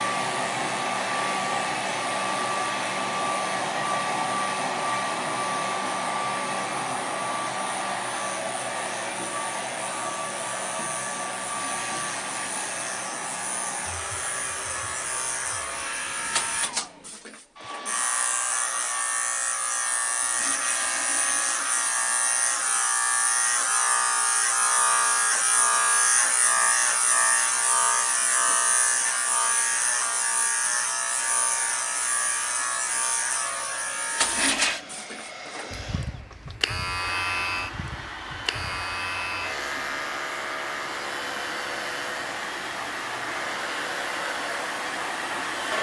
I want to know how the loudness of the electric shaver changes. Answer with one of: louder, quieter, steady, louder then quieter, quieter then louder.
louder then quieter.